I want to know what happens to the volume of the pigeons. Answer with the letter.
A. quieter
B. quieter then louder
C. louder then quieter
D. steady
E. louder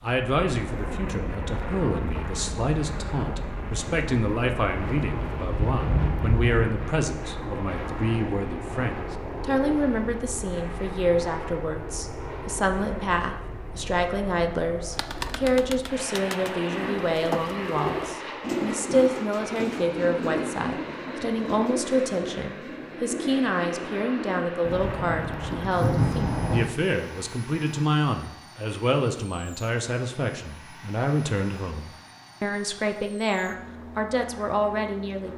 C.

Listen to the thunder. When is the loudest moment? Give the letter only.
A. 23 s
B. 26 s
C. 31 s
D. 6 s
B.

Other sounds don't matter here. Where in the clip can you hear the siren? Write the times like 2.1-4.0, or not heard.
not heard.